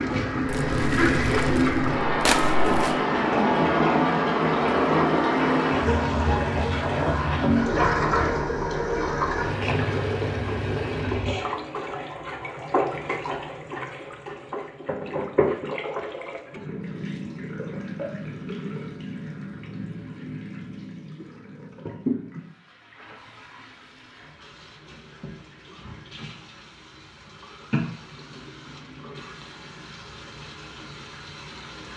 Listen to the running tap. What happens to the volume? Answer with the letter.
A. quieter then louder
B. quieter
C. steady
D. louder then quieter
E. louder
B.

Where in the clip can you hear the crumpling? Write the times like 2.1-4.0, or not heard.
0.5-3.0.